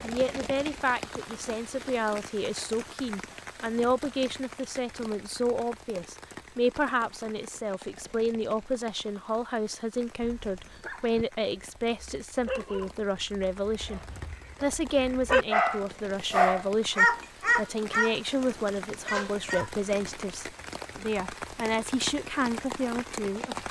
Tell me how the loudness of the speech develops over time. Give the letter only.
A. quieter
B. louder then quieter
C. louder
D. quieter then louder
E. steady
E.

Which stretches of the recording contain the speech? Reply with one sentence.
The speech can be heard from 0.0 to 14.0 s and from 14.6 to 23.6 s.